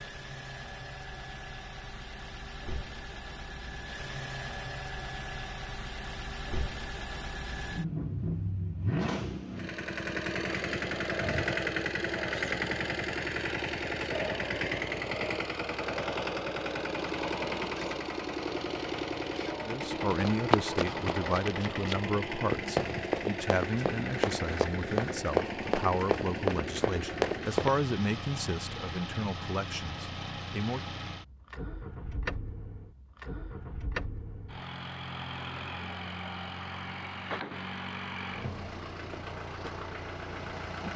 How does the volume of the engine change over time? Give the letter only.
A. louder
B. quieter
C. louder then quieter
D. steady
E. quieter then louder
C.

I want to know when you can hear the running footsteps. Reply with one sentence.
You can hear the running footsteps from 20.1 to 27.7 s.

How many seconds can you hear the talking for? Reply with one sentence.
The talking can be heard for 11 seconds in total.